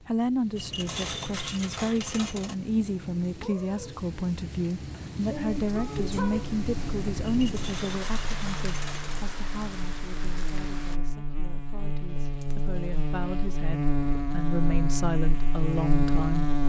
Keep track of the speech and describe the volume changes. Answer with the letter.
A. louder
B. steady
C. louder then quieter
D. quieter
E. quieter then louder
E.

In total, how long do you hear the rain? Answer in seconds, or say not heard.
11 s.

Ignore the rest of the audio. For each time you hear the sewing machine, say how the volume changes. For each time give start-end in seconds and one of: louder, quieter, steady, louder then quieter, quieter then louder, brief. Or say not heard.
not heard.